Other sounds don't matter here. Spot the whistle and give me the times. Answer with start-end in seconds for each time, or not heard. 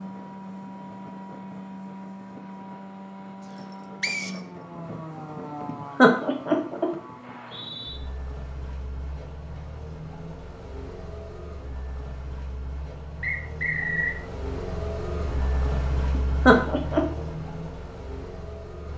4.0-4.4, 7.2-8.0, 13.2-14.2.